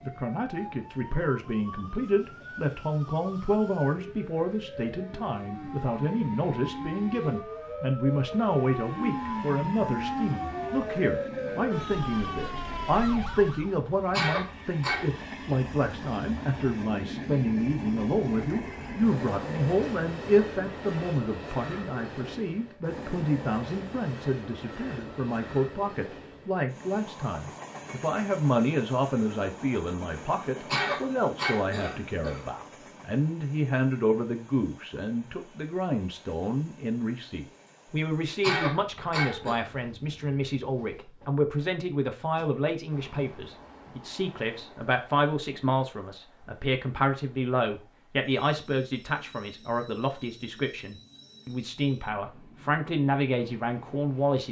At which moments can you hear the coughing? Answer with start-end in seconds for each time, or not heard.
14.1-15.2, 30.6-32.5, 38.4-39.6.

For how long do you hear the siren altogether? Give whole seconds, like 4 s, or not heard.
14 s.